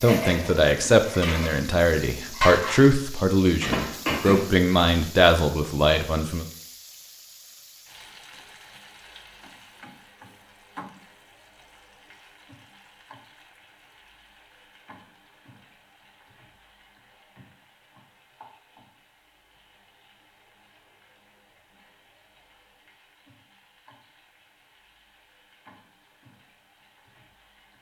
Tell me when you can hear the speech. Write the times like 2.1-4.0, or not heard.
0.0-6.5.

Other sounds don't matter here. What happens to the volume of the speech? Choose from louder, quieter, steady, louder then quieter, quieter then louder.
steady.